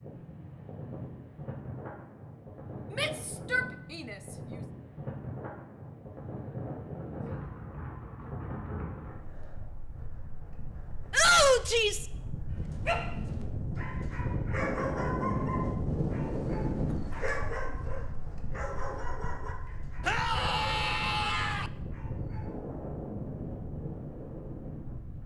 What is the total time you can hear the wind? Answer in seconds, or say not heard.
25 s.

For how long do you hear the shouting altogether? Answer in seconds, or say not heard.
4 s.